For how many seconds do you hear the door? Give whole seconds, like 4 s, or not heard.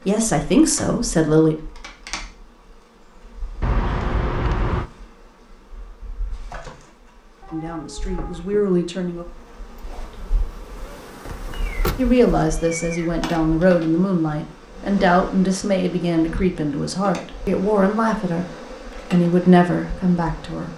2 s.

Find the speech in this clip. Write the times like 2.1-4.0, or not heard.
0.1-1.6, 7.5-9.2, 11.9-20.7.